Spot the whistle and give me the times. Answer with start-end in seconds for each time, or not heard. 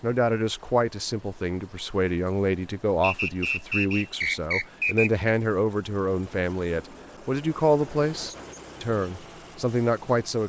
3.0-5.3.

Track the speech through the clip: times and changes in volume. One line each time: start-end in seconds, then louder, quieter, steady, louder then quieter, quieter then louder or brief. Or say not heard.
0.0-10.4 steady.